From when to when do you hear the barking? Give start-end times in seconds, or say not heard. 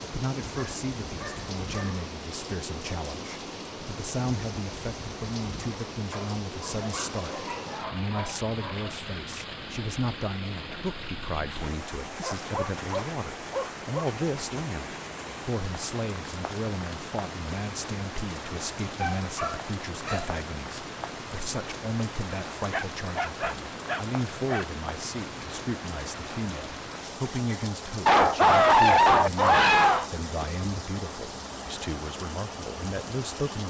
0.4-2.0, 6.1-9.0, 12.2-14.1, 19.0-20.3, 22.7-24.6, 28.1-30.1.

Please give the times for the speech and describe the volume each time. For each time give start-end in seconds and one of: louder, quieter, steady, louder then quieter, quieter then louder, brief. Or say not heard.
0.0-33.6 steady.